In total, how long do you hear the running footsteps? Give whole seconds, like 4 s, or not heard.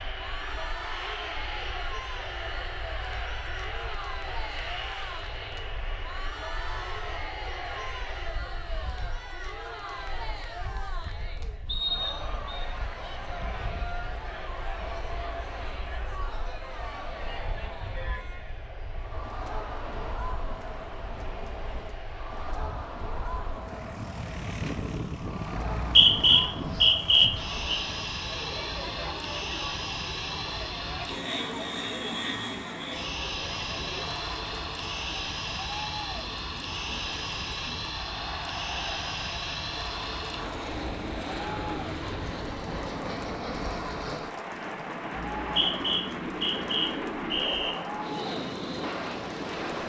not heard.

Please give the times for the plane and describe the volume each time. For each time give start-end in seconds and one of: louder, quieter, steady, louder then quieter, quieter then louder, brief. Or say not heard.
0.0-49.8 quieter then louder.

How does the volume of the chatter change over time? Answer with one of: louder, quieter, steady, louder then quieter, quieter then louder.
steady.